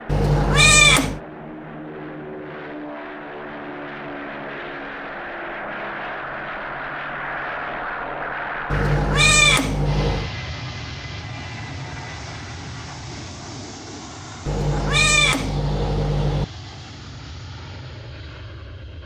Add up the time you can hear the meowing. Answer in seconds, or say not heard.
5 s.